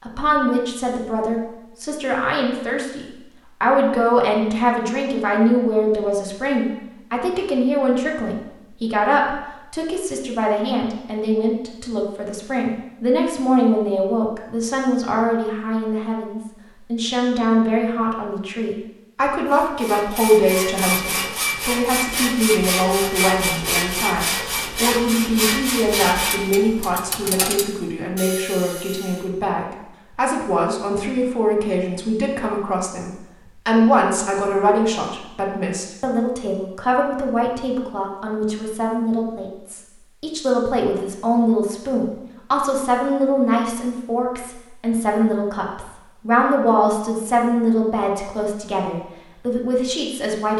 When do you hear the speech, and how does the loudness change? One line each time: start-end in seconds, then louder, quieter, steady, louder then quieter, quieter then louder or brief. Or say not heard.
0.0-50.5 steady.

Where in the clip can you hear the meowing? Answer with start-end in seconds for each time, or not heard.
not heard.